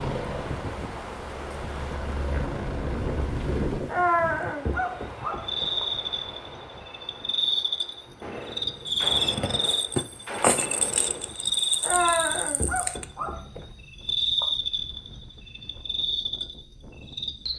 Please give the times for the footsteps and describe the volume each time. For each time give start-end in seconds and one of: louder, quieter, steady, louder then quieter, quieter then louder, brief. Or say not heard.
not heard.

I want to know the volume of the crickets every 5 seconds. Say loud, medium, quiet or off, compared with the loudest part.
off, loud, loud, medium.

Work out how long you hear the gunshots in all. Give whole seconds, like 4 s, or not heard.
3 s.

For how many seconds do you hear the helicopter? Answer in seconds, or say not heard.
4 s.